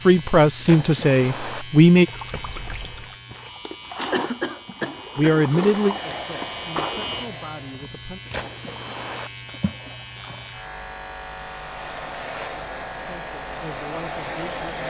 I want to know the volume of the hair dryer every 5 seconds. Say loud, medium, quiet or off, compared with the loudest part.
off, loud, loud.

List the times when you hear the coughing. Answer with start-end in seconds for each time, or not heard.
4.1-5.4.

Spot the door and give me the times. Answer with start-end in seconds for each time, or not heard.
not heard.